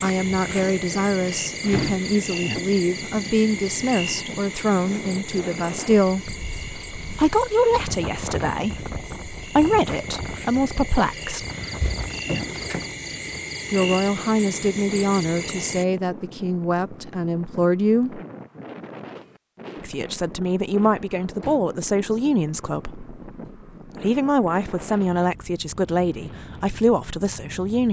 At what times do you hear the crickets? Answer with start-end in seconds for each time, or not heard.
0.0-15.8.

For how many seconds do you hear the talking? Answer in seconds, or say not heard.
22 s.